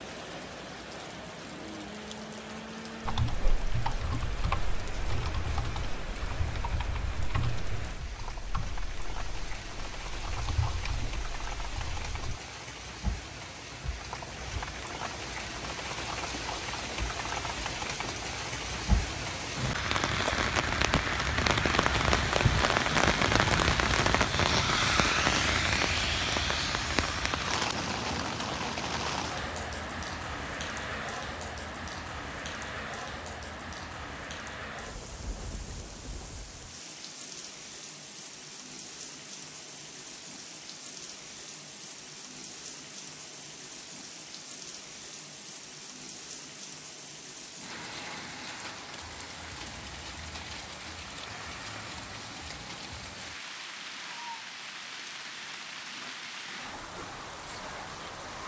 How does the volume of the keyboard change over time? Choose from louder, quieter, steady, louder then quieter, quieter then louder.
quieter then louder.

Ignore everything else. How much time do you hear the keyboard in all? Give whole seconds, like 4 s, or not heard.
9 s.